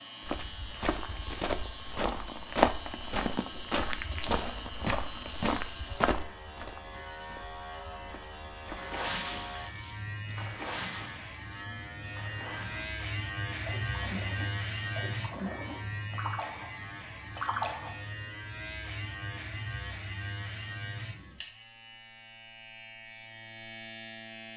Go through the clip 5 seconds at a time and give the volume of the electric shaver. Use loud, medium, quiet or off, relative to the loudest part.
medium, medium, loud, loud, medium.